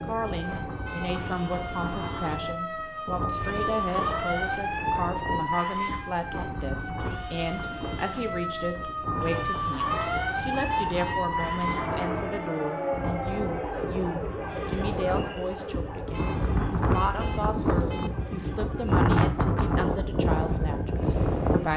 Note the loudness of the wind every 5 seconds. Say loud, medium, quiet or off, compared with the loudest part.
medium, medium, medium, loud, loud.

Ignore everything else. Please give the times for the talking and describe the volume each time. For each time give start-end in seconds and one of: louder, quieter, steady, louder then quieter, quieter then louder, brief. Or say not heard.
0.0-21.7 steady.